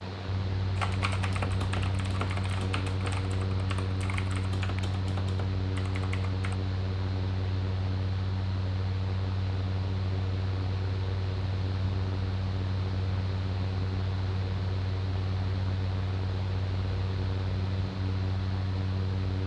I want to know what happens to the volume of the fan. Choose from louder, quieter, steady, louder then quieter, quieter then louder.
steady.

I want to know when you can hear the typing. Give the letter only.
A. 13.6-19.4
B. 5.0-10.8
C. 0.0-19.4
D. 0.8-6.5
D.